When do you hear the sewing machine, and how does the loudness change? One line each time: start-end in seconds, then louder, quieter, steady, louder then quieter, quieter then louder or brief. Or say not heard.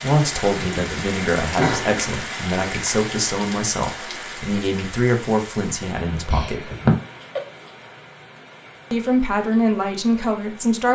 not heard.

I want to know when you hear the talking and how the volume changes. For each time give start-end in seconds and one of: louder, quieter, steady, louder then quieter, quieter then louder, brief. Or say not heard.
0.0-6.7 steady
8.9-10.9 brief.